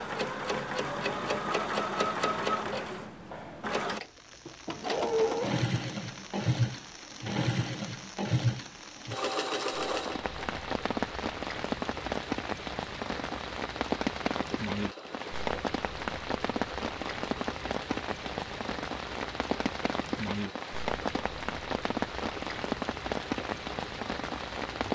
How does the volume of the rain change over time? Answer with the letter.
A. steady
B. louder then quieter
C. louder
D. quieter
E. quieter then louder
C.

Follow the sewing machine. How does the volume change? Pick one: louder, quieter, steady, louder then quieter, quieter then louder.
quieter.